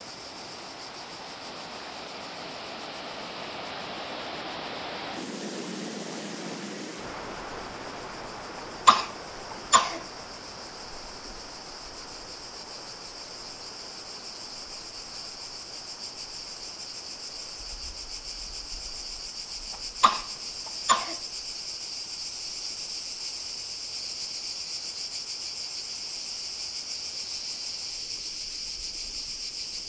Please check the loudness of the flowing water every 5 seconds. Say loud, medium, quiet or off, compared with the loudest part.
loud, loud, medium, quiet, quiet, quiet.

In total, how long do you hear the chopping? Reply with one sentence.
You can't hear the chopping here.